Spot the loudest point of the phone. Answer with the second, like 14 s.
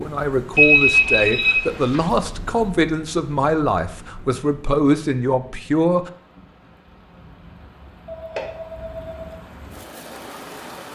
1 s.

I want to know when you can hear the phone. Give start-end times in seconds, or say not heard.
0.6-2.0, 8.1-9.4.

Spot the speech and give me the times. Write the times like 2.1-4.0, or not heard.
0.0-6.1.